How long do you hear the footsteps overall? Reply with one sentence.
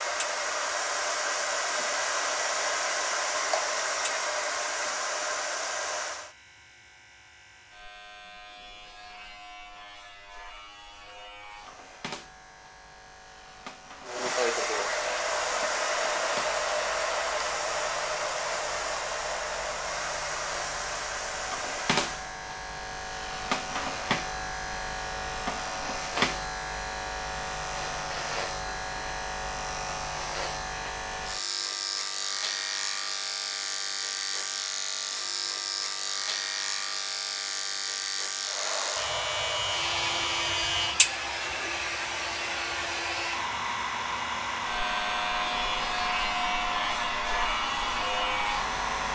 The footsteps can't be heard in this clip.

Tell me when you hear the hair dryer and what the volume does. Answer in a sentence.
You can hear the hair dryer from 0.0 to 6.3 s, at a steady volume; from 14.0 to 22.4 s, getting quieter; and from 38.4 to 49.1 s, at a steady volume.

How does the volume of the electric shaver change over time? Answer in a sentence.
The volume of the electric shaver goes up.